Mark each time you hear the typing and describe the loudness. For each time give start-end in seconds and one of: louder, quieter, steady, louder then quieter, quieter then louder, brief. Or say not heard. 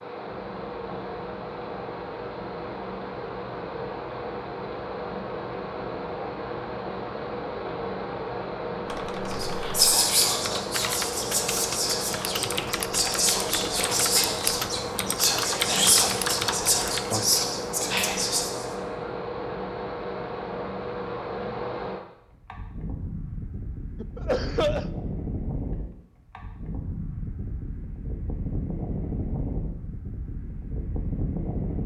8.8-17.4 louder.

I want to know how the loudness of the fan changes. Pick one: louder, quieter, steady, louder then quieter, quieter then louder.
steady.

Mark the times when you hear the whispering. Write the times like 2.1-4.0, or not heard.
9.3-18.6.